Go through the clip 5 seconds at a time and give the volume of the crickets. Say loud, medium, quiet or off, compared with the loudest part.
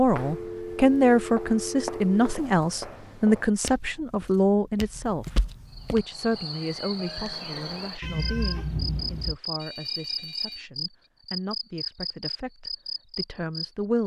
off, loud, loud.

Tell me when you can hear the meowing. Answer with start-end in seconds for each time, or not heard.
8.0-9.4.